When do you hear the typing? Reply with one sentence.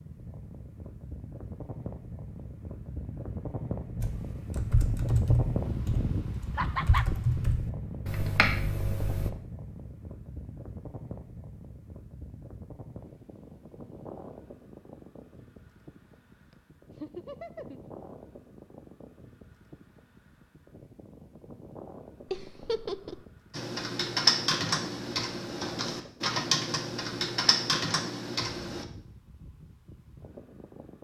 You can hear the typing from 4.0 to 9.3 s and from 23.5 to 28.9 s.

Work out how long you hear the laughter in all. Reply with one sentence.
The laughter can be heard for 3 seconds in total.